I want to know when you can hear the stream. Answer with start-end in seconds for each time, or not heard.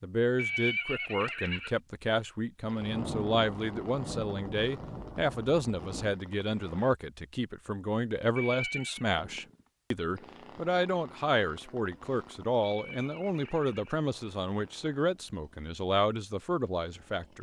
not heard.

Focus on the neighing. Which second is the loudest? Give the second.
1 s.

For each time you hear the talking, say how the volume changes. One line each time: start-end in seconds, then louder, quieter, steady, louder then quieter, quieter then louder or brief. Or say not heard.
0.0-17.3 steady.